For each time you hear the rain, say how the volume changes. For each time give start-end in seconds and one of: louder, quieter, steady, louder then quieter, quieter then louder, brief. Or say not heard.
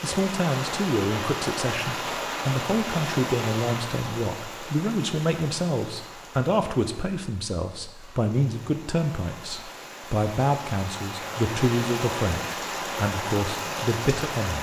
0.0-14.5 quieter then louder.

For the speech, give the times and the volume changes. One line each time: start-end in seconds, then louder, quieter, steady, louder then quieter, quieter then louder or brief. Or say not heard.
0.0-14.5 steady.